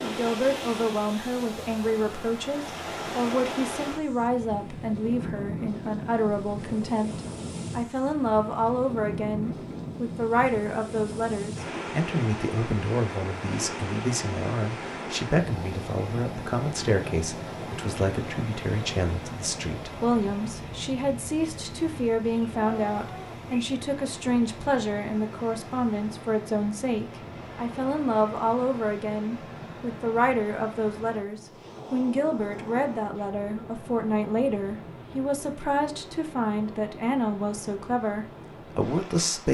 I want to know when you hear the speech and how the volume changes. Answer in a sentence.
The speech can be heard from 0.0 to 39.5 s, at a steady volume.